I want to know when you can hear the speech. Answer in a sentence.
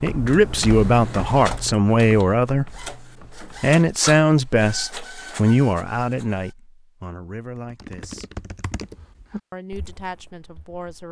You can hear the speech from 0.0 to 8.2 s and from 9.5 to 11.0 s.